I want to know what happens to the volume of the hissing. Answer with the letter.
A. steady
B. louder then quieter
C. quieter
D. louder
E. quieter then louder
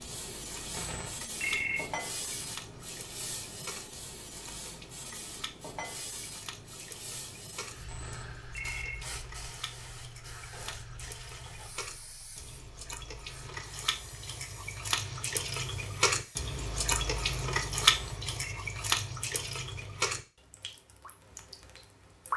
C.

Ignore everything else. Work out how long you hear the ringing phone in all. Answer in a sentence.
The ringing phone can be heard for 3 seconds in total.